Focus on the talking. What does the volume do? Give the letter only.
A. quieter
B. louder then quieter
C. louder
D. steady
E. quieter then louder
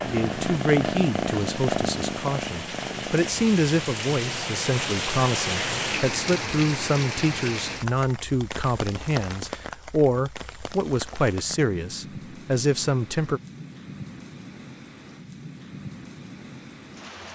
D.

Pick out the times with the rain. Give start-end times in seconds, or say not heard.
0.0-17.3.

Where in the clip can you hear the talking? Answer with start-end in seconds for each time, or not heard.
0.0-13.4.